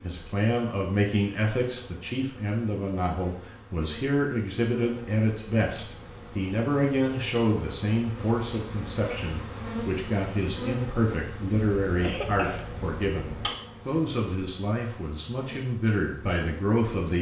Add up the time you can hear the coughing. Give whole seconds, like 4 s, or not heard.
2 s.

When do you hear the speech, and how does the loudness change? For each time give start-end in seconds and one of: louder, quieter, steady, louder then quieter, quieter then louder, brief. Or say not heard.
0.0-17.1 steady.